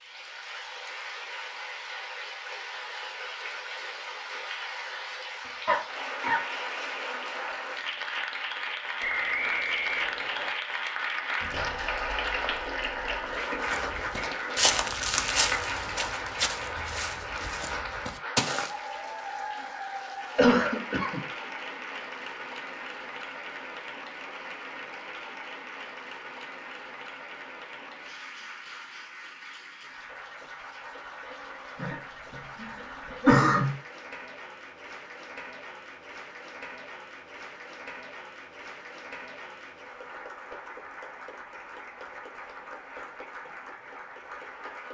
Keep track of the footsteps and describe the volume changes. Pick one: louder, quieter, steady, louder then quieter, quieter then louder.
quieter.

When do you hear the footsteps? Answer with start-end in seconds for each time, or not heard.
13.7-18.7.